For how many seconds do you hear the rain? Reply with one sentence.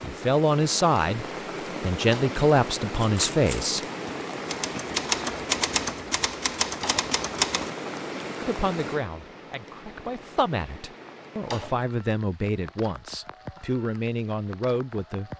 You can hear the rain for 15 seconds altogether.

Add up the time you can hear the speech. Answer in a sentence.
You can hear the speech for 11 seconds altogether.